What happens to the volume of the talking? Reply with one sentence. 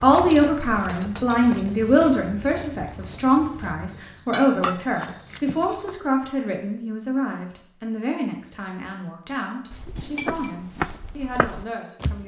The loudness of the talking goes down.